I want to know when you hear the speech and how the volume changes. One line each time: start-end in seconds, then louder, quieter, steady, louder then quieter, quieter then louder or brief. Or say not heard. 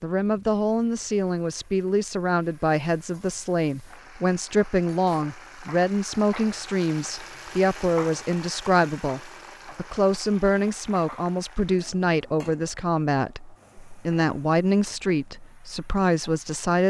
0.0-16.8 steady.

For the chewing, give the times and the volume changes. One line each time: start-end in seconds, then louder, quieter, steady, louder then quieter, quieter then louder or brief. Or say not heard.
not heard.